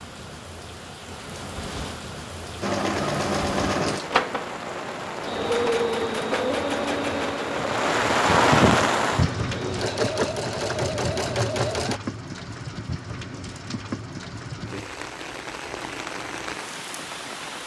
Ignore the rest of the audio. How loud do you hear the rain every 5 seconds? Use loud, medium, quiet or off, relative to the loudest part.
medium, loud, medium, medium.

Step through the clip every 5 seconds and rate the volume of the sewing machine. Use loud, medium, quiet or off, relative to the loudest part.
loud, loud, loud, off.